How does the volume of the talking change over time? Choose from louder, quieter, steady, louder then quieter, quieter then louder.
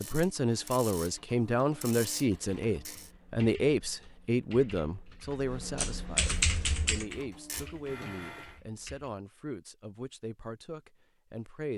quieter.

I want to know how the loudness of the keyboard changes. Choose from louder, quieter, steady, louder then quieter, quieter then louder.
louder then quieter.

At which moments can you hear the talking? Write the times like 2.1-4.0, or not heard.
0.0-11.7.